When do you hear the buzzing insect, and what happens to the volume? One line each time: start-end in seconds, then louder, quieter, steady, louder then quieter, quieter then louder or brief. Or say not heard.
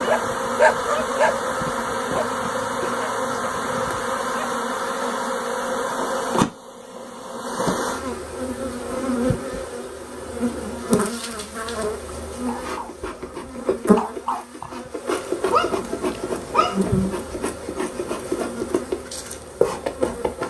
0.0-20.4 steady.